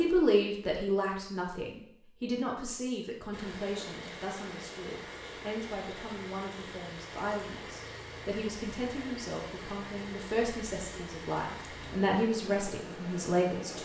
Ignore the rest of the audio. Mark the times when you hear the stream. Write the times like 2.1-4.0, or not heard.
3.3-13.8.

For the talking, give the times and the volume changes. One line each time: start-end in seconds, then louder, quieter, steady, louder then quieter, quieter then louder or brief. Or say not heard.
0.0-13.8 quieter then louder.